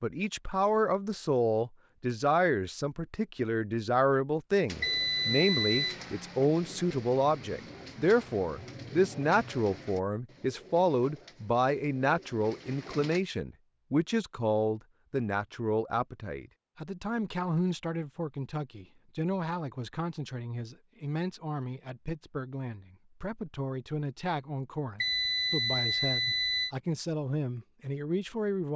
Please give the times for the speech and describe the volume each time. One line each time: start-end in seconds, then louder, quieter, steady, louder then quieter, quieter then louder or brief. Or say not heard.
0.0-28.7 quieter.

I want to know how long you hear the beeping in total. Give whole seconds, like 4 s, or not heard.
3 s.